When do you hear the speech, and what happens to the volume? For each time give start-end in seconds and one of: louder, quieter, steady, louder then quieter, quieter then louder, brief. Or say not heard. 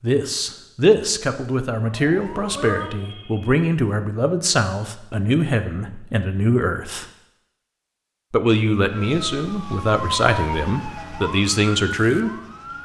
0.0-7.0 steady
8.3-12.3 steady.